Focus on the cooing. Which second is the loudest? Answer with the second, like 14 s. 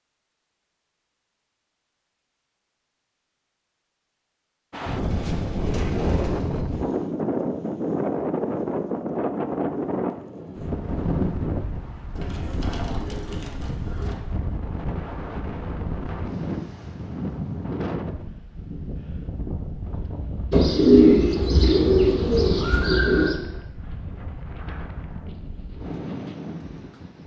21 s.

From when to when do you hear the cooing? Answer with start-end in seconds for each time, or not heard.
5.1-6.8, 12.2-14.2, 20.5-23.4.